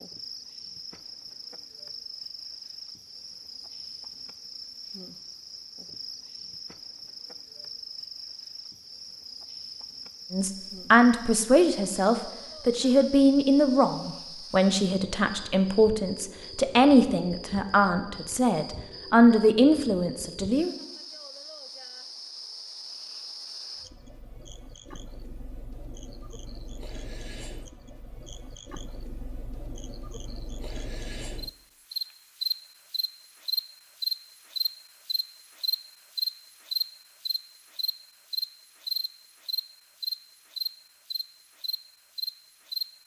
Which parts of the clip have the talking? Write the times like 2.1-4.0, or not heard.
10.3-20.8.